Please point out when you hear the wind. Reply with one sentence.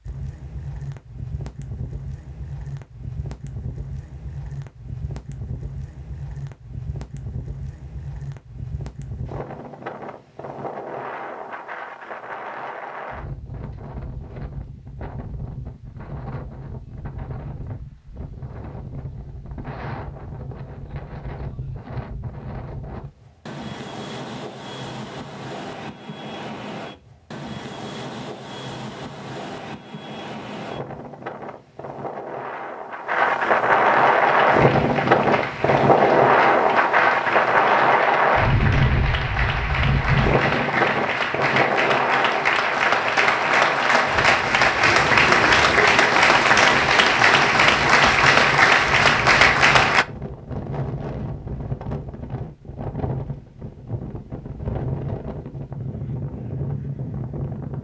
You can hear the wind from 0.0 to 57.7 s.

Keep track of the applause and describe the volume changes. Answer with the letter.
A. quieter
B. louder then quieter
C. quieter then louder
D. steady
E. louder
E.